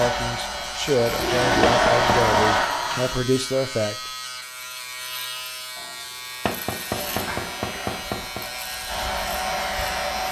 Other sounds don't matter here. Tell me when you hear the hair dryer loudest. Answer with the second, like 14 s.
2 s.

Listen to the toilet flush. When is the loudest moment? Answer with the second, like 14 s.
2 s.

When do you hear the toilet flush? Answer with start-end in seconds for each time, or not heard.
1.1-3.2, 5.8-8.1.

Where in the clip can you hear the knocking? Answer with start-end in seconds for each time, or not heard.
1.6-2.6, 6.5-8.4.